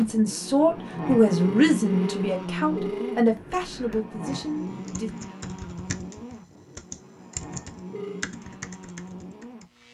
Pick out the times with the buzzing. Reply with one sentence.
You can hear the buzzing from 0.0 to 9.9 s.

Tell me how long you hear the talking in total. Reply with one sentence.
The talking can be heard for 5 seconds in total.